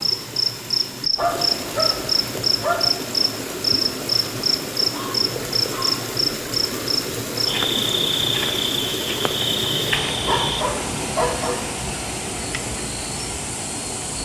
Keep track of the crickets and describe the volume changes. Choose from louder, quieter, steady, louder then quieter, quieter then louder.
quieter.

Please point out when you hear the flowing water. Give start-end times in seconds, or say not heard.
0.0-14.1.